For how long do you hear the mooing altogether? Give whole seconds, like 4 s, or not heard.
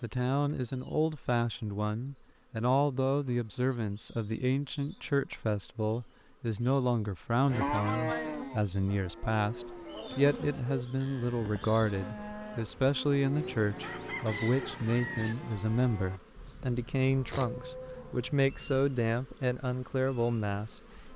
11 s.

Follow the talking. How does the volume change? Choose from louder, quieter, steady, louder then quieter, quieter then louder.
steady.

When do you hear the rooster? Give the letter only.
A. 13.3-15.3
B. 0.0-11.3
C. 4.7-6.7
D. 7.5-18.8
A.